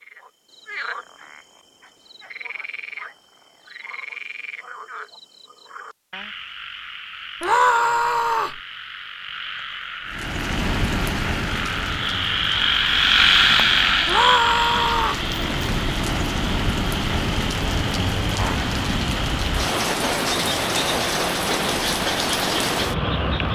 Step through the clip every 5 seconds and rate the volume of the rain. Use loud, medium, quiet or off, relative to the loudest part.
off, off, medium, loud, loud.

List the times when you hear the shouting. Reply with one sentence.
You can hear the shouting from 7.4 to 8.6 s and from 14.1 to 15.2 s.